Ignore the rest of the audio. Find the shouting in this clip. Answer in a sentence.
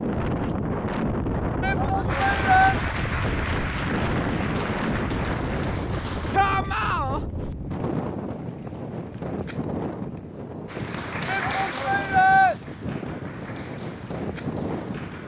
You can hear the shouting from 1.6 to 2.8 s, from 6.3 to 7.2 s and from 11.2 to 12.6 s.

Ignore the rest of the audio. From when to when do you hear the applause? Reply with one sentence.
The applause can be heard from 2.0 to 6.4 s and from 10.7 to 15.2 s.